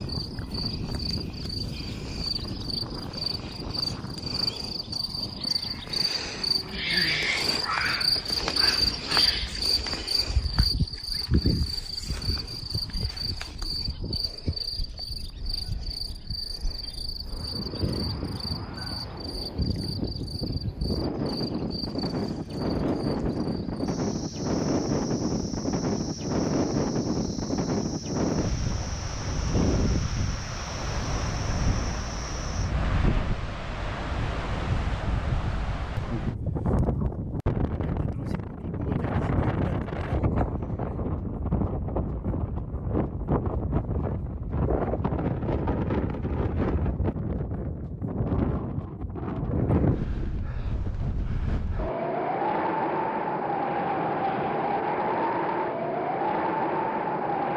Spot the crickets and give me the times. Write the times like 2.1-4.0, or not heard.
0.0-32.8.